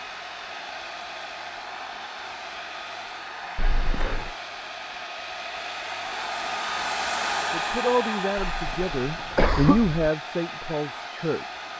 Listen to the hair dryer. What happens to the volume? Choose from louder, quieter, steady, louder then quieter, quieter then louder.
louder then quieter.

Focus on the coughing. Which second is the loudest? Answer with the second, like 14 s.
10 s.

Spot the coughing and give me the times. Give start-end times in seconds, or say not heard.
3.5-4.3, 8.3-10.1.